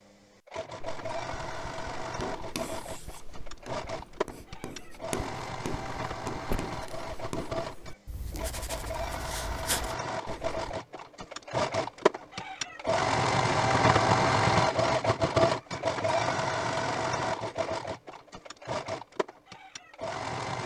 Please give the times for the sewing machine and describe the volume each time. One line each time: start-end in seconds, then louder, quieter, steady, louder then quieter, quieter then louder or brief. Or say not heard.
0.0-20.6 louder then quieter.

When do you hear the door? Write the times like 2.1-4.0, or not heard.
6.5-7.0.